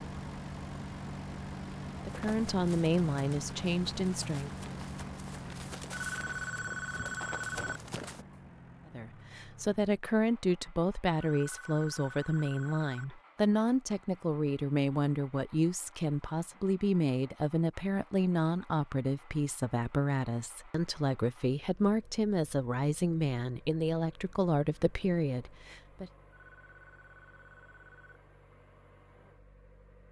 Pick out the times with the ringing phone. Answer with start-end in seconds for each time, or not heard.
5.9-7.8, 11.2-13.1, 26.3-28.2.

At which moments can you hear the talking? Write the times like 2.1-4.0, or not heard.
2.0-4.5, 8.8-26.1.